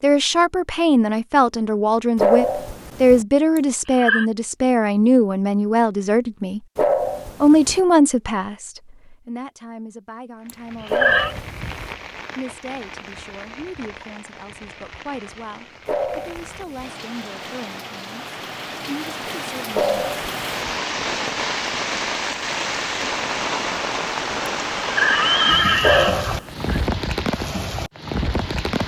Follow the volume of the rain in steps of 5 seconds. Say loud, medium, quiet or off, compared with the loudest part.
off, off, quiet, medium, loud, loud.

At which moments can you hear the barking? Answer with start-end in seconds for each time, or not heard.
2.1-3.2, 6.8-7.8, 10.9-11.9, 15.8-16.9, 19.7-20.8, 25.8-26.8.